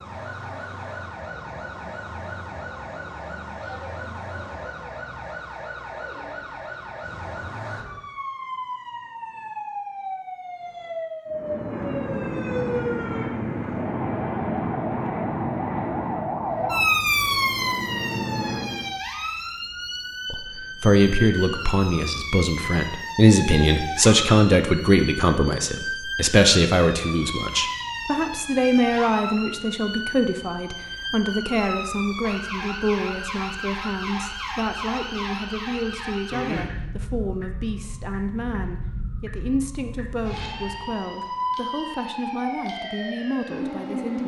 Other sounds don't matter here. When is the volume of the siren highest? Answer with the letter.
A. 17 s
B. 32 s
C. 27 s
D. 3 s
A.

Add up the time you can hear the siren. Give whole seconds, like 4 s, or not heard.
44 s.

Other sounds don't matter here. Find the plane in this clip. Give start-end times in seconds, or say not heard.
11.3-19.0.